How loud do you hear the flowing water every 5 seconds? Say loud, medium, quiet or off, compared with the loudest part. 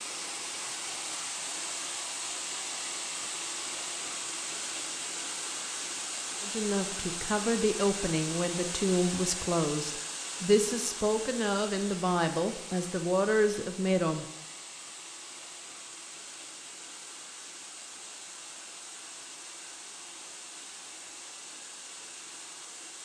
loud, loud, medium, medium, medium.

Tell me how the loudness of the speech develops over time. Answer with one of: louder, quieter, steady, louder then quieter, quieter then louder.
steady.